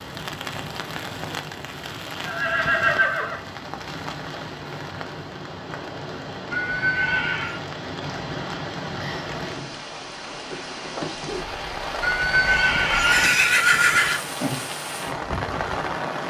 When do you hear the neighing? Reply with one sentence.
You can hear the neighing from 2.2 to 3.5 s, from 6.5 to 7.6 s and from 12.0 to 14.2 s.